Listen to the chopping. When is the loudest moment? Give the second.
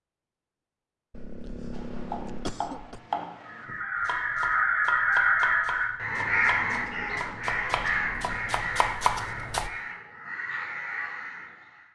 9 s.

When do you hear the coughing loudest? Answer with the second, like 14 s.
2 s.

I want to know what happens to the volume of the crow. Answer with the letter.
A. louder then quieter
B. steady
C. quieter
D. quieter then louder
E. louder
C.